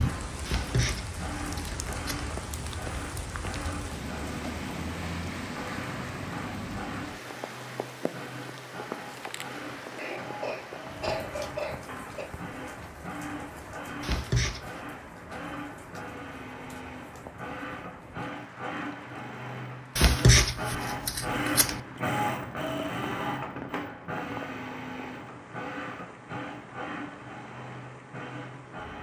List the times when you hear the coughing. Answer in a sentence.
You can hear the coughing from 9.9 to 12.2 s.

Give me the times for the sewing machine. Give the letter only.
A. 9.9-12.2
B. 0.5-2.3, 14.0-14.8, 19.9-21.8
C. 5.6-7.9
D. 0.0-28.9
D.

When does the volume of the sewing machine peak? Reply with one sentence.
The volume of the sewing machine peaks at 22 seconds.